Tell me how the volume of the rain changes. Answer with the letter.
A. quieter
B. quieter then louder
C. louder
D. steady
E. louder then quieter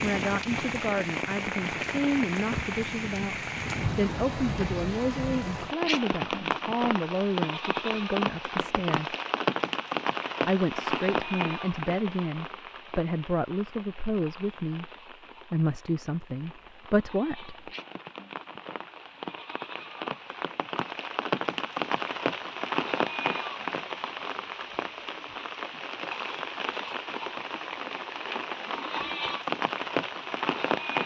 B.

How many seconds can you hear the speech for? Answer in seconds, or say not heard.
15 s.